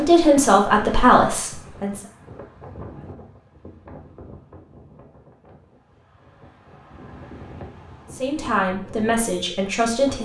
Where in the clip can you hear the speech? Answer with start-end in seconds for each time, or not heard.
0.0-2.0, 8.1-10.2.